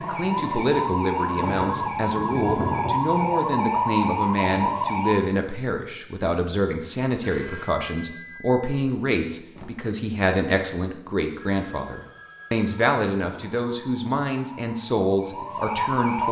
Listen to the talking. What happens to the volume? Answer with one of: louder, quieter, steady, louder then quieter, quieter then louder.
steady.